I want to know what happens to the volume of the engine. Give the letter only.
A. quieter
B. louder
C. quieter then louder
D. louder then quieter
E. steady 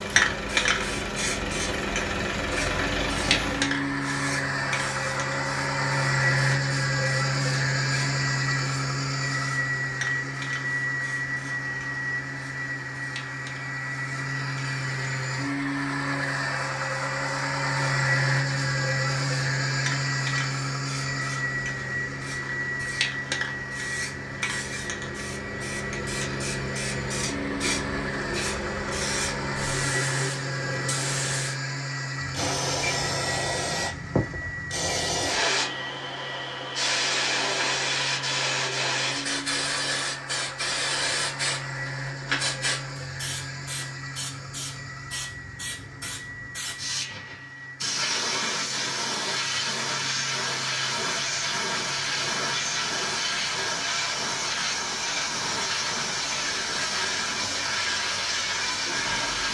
A.